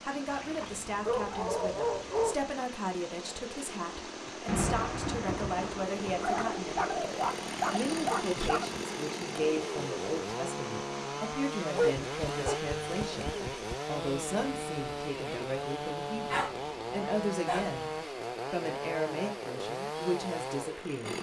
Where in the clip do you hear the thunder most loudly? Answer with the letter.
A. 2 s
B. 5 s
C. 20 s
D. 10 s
B.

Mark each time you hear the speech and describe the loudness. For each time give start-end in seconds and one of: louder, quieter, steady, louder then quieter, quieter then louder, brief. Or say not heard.
0.0-6.8 steady
7.7-17.9 steady
18.5-21.1 brief.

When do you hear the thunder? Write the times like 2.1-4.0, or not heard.
4.5-6.5.